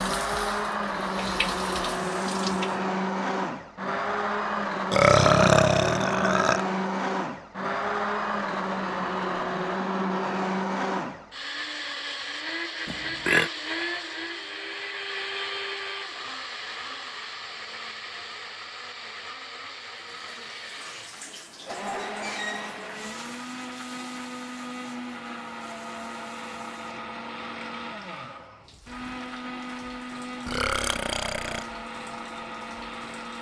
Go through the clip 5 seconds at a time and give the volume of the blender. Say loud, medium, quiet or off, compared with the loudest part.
loud, loud, loud, medium, medium, medium, medium.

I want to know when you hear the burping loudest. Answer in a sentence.
The volume of the burping peaks at 5 seconds.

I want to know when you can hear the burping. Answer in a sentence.
You can hear the burping from 4.9 to 6.7 s, from 12.8 to 13.5 s and from 30.4 to 31.6 s.